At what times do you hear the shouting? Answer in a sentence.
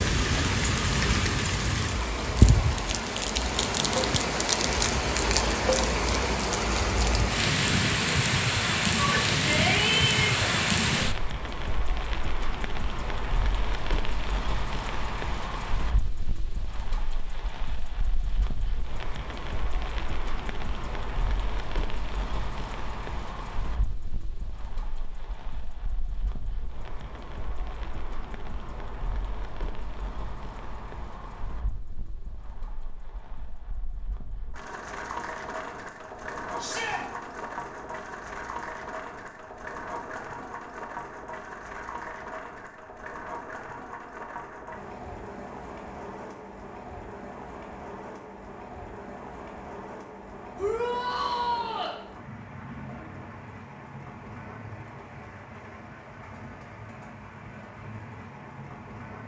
The shouting can be heard from 8.9 to 10.5 s, from 36.5 to 37.0 s and from 50.5 to 52.0 s.